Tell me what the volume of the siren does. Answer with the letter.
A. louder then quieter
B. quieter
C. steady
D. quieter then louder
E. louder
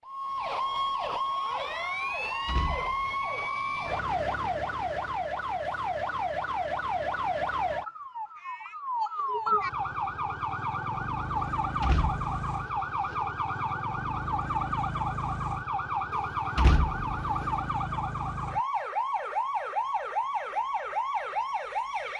C.